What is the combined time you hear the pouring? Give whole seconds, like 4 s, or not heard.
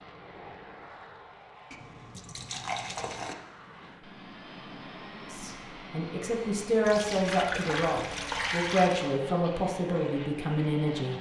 4 s.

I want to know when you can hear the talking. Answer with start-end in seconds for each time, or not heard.
5.3-11.1.